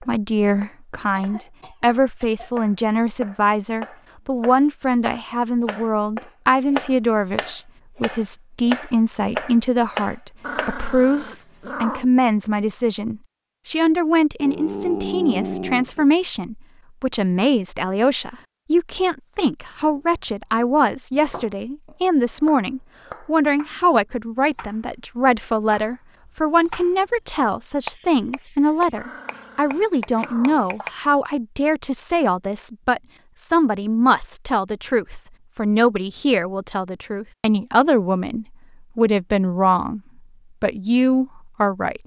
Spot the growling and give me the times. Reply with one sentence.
You can hear the growling from 10.4 to 12.1 s, from 14.3 to 16.1 s and from 28.9 to 30.8 s.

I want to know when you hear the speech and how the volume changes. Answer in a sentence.
The speech can be heard from 0.0 to 40.0 s, at a steady volume; and briefly from 40.6 to 42.0 s.